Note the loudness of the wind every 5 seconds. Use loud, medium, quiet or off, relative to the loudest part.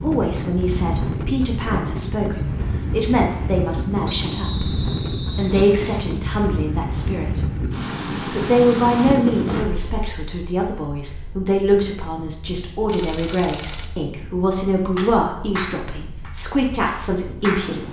loud, loud, quiet, quiet.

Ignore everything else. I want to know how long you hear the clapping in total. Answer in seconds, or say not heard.
3 s.